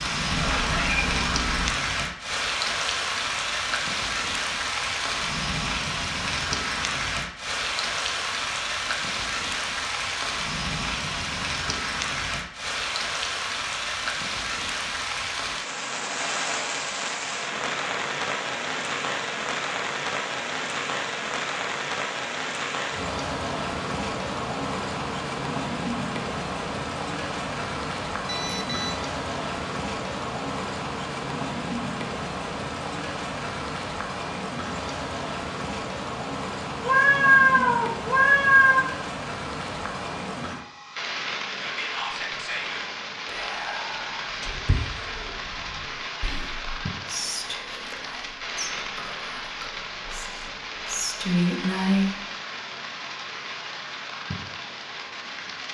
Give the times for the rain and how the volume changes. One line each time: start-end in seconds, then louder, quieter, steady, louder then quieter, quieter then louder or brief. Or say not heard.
0.0-55.6 quieter.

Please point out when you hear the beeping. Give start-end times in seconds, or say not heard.
28.2-29.0.